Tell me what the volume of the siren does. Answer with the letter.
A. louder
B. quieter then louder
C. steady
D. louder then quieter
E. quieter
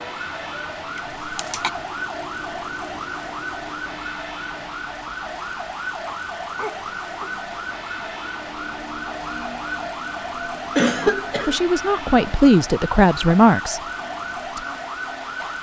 C.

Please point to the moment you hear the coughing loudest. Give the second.
11 s.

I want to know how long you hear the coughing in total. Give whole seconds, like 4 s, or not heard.
3 s.